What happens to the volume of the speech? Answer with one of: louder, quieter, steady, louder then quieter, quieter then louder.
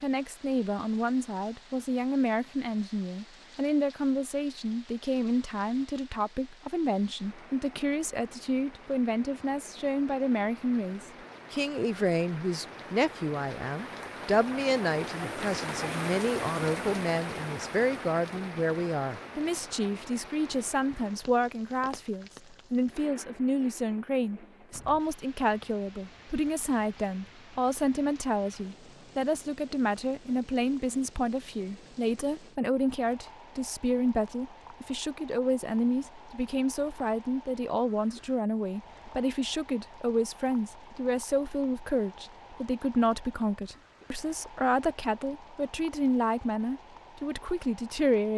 steady.